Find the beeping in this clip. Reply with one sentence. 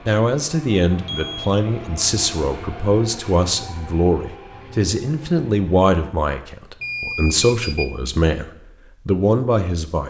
You can hear the beeping from 1.1 to 1.5 s and from 6.8 to 8.0 s.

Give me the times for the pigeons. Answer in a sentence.
The pigeons can't be heard in this clip.